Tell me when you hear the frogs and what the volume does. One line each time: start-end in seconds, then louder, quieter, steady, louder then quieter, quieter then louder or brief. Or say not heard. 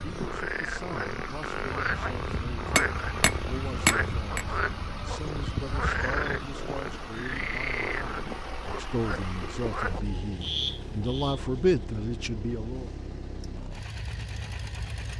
0.0-11.4 steady.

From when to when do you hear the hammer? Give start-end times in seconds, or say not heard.
2.8-4.5.